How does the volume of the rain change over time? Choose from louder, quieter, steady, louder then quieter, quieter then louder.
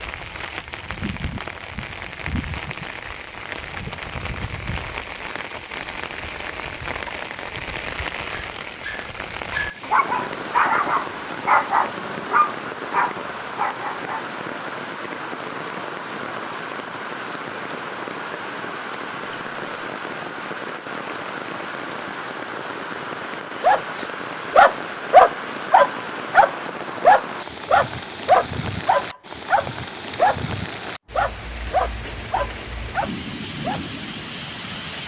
steady.